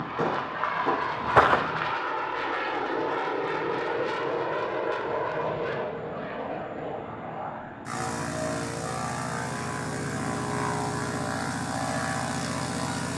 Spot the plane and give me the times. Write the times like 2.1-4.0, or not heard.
0.0-13.1.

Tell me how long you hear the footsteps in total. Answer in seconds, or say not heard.
2 s.